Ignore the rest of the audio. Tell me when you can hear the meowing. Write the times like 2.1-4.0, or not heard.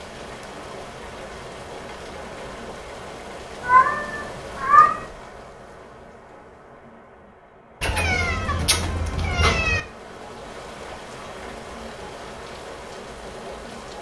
3.6-5.0, 7.8-9.8.